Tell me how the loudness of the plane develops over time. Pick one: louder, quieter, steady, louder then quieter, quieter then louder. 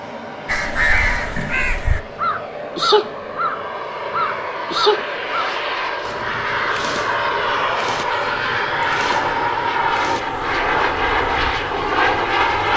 louder.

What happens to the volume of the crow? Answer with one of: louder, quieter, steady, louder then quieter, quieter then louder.
quieter.